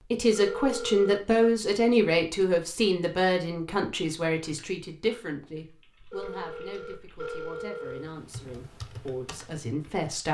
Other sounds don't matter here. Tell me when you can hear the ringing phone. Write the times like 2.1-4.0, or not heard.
0.3-1.6, 6.1-8.2.